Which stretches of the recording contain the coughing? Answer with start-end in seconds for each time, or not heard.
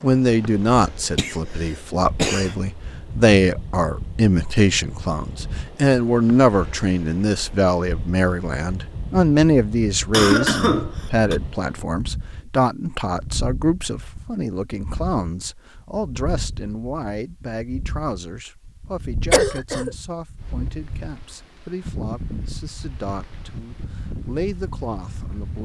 1.1-2.5, 10.1-11.3, 19.3-19.9.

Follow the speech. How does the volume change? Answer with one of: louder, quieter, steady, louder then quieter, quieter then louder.
quieter.